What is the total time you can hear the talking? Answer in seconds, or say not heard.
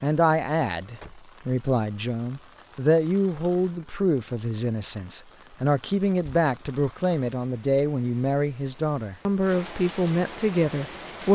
11 s.